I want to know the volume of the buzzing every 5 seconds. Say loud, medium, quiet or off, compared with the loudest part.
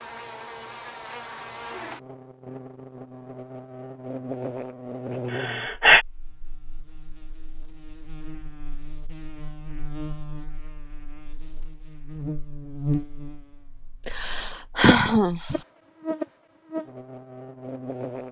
loud, medium, loud, loud.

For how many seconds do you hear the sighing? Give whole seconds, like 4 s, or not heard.
2 s.